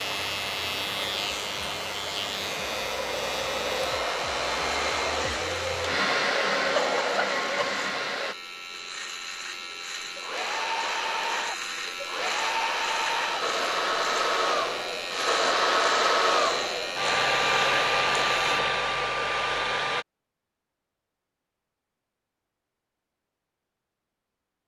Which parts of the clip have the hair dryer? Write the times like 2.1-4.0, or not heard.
0.0-8.3, 10.2-20.1.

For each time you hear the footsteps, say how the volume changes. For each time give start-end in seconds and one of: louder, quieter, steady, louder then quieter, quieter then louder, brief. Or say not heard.
not heard.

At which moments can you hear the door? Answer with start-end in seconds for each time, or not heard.
not heard.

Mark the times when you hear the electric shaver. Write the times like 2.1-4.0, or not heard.
0.0-18.6.